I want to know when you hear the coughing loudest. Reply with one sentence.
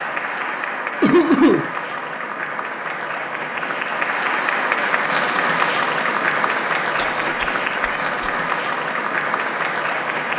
The loudest moment of the coughing is at 1 second.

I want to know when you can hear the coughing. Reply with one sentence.
You can hear the coughing from 1.0 to 1.7 s and from 7.0 to 8.1 s.